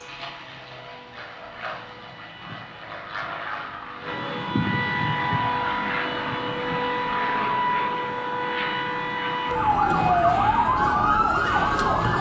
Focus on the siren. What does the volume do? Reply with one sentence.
The loudness of the siren goes up.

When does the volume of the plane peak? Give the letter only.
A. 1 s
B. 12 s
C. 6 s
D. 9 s
C.